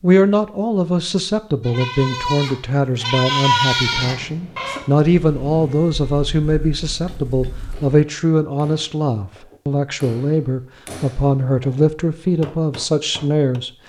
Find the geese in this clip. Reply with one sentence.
The geese can't be heard in this clip.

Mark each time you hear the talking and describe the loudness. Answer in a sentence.
The talking can be heard from 0.0 to 13.7 s, at a steady volume.